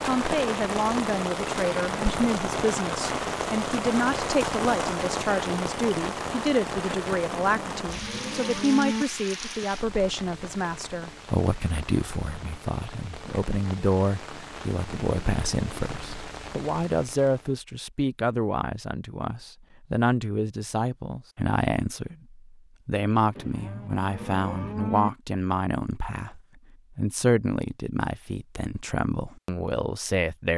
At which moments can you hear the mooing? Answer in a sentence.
The mooing can be heard from 7.2 to 9.1 s and from 23.4 to 25.1 s.